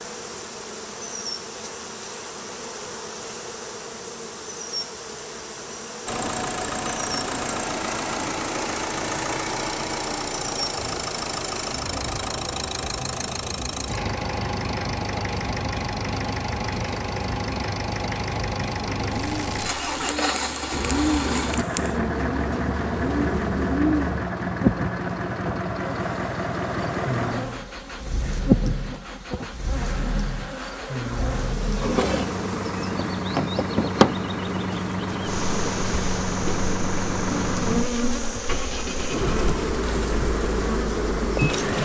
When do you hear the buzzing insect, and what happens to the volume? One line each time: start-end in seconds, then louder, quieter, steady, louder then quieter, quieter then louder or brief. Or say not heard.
0.0-41.8 louder.